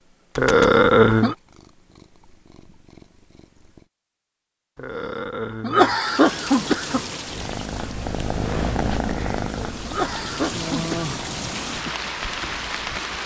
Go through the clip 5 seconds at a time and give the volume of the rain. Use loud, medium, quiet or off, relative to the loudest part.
off, medium, loud.